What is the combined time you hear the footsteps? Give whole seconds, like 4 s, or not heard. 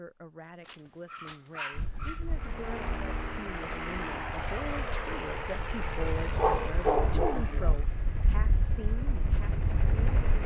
not heard.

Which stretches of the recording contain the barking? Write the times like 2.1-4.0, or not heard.
0.7-2.5, 6.0-7.8.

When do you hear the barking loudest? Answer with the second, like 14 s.
7 s.